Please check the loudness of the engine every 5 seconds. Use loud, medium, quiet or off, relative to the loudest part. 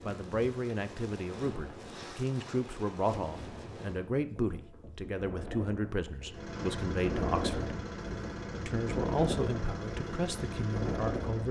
off, loud, loud.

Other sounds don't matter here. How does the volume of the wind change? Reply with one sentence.
The loudness of the wind goes up.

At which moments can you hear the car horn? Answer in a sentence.
You can't hear the car horn here.